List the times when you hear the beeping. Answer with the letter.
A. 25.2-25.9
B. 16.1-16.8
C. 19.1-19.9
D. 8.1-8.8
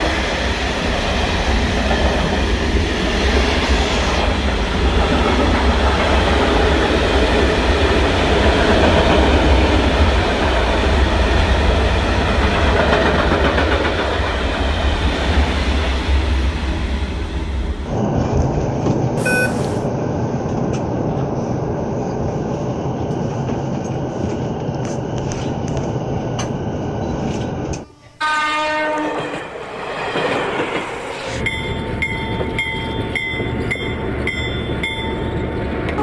C.